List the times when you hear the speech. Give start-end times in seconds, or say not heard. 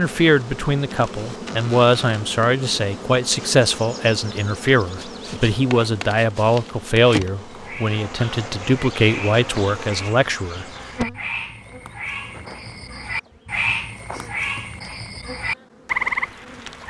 0.0-10.7.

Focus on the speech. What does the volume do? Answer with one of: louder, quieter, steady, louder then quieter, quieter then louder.
steady.